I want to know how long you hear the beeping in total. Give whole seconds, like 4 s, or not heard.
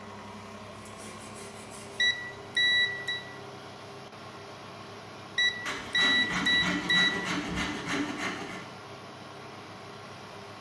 3 s.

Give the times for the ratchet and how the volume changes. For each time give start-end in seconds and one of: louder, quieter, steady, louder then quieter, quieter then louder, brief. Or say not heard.
not heard.